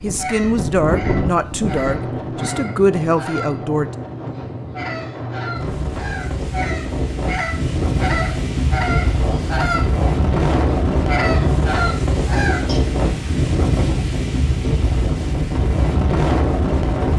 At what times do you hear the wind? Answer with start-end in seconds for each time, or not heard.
0.0-17.1.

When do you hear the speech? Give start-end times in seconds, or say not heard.
0.0-3.9.